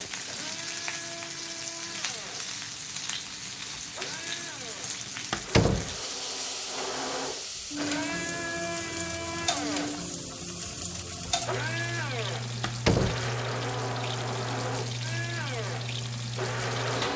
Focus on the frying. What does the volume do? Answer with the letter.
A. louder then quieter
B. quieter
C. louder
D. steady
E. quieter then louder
D.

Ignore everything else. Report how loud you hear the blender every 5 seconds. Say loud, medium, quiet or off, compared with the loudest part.
medium, loud, loud, loud.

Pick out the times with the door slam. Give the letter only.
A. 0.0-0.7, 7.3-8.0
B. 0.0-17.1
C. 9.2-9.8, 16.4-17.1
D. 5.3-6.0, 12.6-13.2
D.